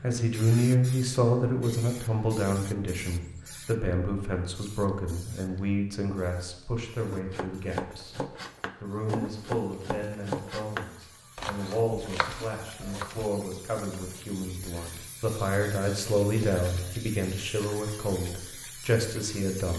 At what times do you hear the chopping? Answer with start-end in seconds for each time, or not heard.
7.1-13.8.